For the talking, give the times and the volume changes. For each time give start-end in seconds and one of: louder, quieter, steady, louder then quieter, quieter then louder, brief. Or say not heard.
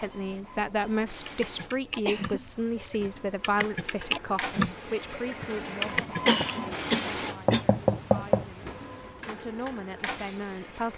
0.0-10.9 quieter then louder.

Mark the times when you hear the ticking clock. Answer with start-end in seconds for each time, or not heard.
not heard.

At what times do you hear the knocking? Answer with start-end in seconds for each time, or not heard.
7.5-8.4.